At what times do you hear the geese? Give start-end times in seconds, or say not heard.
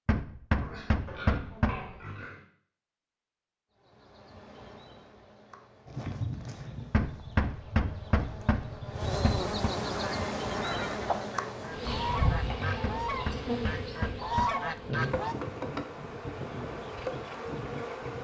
9.9-15.3.